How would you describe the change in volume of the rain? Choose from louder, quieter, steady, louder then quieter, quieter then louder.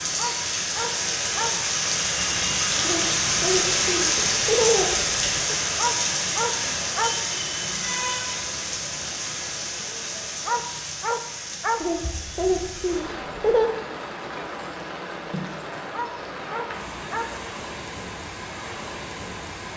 quieter.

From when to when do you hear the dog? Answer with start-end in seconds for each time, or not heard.
0.1-1.6, 5.8-7.2, 10.4-11.8, 15.9-17.3.